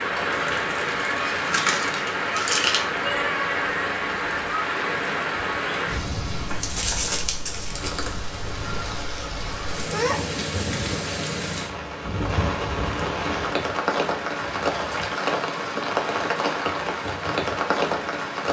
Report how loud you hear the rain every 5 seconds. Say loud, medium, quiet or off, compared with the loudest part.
loud, medium, loud, loud.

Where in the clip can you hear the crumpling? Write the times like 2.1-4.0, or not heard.
0.1-2.8, 6.5-8.2, 14.4-15.2.